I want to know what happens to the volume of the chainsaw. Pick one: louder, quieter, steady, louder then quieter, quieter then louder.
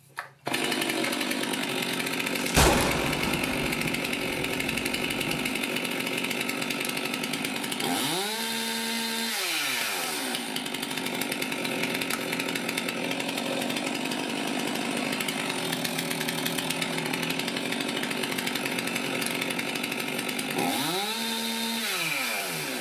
steady.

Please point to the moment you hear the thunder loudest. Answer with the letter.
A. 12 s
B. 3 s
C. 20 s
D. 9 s
B.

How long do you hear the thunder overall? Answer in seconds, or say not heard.
3 s.